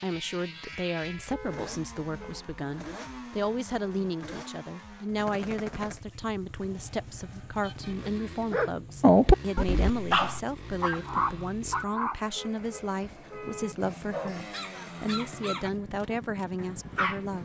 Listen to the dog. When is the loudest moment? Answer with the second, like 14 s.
9 s.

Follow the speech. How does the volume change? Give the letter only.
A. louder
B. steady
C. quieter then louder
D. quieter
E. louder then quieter
B.